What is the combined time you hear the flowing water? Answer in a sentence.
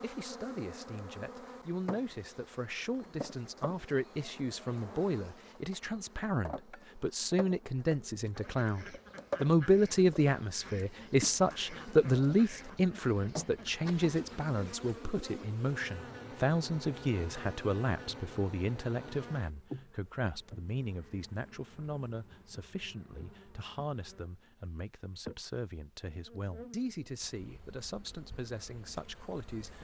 The flowing water can't be heard in this clip.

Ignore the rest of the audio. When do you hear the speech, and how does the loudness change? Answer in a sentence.
The speech can be heard from 0.0 to 29.7 s, getting louder then quieter.